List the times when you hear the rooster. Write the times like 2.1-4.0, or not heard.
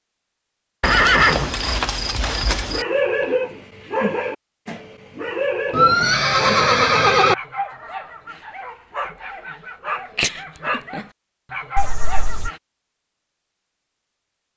not heard.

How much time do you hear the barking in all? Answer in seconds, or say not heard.
10 s.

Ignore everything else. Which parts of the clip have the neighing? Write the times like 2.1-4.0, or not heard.
0.8-2.9, 5.7-7.3, 11.8-12.5.